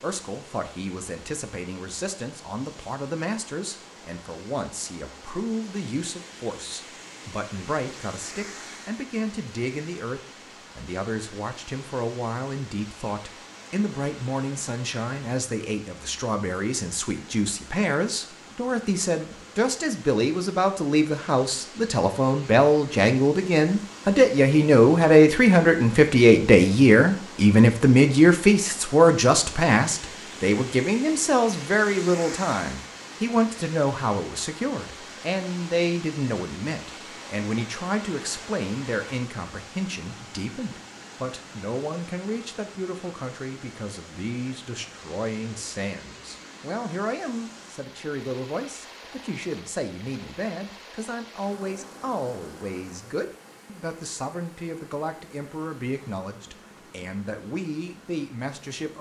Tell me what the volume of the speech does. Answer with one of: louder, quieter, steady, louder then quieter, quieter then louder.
louder then quieter.